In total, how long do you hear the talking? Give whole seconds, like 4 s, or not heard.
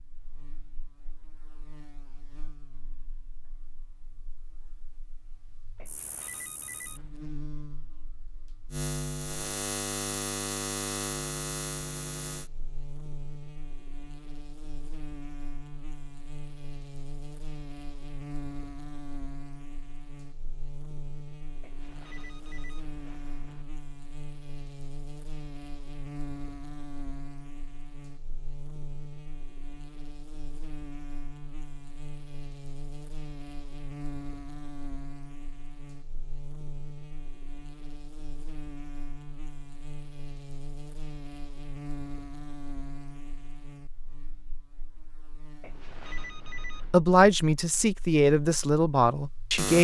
3 s.